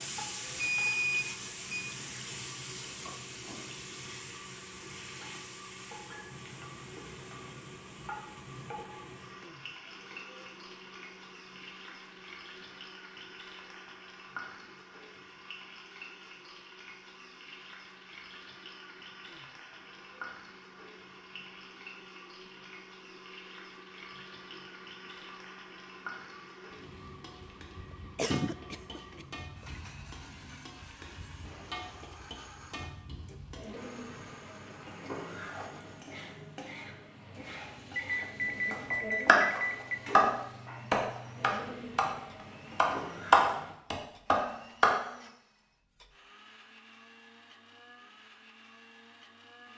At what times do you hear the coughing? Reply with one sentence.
You can hear the coughing from 28.1 to 29.2 s.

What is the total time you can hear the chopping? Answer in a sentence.
The chopping can be heard for 5 seconds in total.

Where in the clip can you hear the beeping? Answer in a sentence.
You can hear the beeping from 0.6 to 1.9 s and from 38.0 to 40.0 s.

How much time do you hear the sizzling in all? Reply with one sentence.
You can hear the sizzling for 44 seconds altogether.